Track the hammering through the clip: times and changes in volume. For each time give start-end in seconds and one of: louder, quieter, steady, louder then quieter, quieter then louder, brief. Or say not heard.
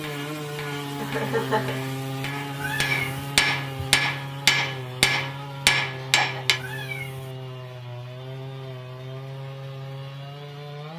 0.0-6.6 louder.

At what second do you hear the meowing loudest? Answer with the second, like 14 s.
3 s.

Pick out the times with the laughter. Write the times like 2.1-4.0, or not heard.
0.9-1.8, 5.9-6.7.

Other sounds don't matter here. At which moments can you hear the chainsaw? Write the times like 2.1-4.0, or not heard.
0.0-10.9.